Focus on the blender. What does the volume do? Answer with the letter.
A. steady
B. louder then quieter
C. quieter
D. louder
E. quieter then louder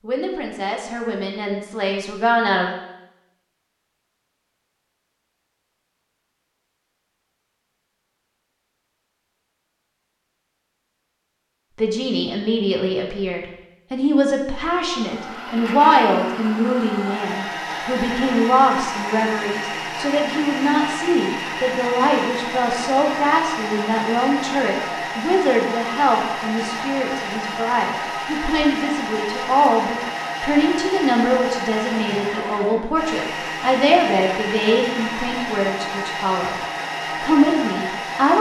A.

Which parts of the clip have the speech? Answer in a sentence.
The speech can be heard from 0.0 to 2.8 s, from 11.8 to 36.5 s and from 37.2 to 38.3 s.